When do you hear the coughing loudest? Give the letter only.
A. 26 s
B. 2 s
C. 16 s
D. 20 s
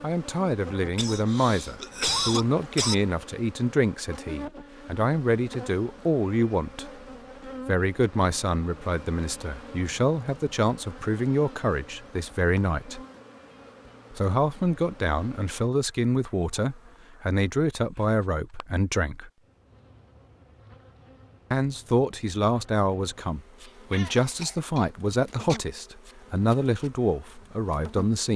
B.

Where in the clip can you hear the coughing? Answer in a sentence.
The coughing can be heard from 0.9 to 3.0 s and from 23.6 to 25.6 s.